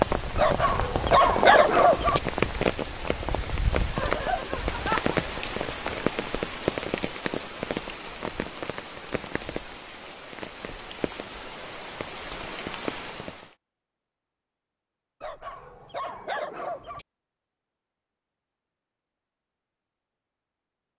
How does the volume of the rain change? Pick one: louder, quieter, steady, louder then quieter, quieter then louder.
quieter.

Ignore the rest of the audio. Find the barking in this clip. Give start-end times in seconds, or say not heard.
0.3-2.2, 15.2-17.1.